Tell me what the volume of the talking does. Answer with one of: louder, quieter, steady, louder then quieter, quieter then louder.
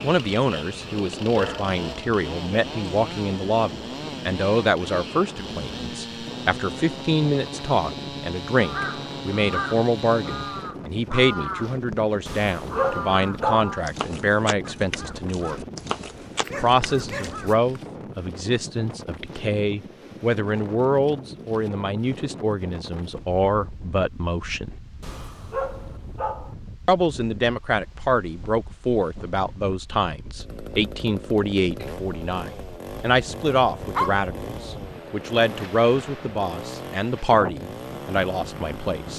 steady.